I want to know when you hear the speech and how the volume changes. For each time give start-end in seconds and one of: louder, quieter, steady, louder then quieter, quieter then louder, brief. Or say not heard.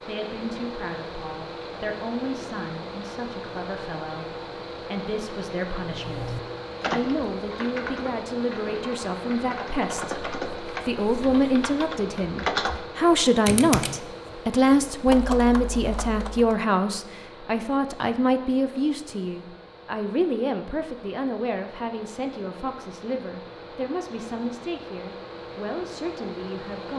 0.1-26.9 louder then quieter.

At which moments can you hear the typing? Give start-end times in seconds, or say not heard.
5.9-16.6.